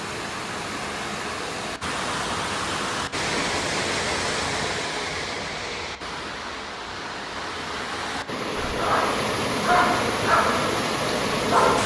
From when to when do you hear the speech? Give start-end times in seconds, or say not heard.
not heard.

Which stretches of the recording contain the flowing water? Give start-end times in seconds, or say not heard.
0.0-11.8.